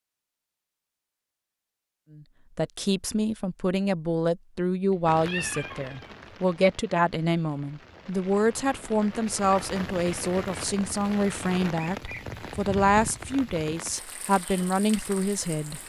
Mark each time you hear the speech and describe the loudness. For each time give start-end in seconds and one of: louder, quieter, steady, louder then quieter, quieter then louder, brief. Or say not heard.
2.1-15.8 steady.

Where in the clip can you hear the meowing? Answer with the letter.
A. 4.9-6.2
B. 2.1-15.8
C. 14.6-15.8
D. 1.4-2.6
A.